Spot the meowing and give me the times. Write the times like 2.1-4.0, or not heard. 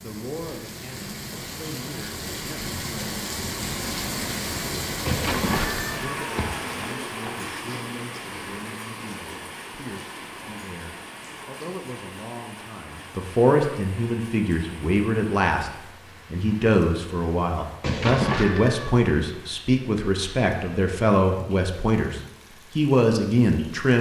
5.0-7.4, 17.8-18.9.